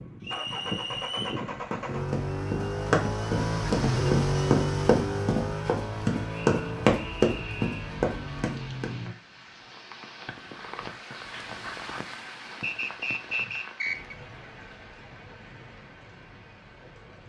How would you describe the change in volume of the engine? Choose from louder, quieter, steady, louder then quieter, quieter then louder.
louder then quieter.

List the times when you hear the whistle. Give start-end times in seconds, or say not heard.
0.2-1.4, 6.3-7.9, 12.6-14.2.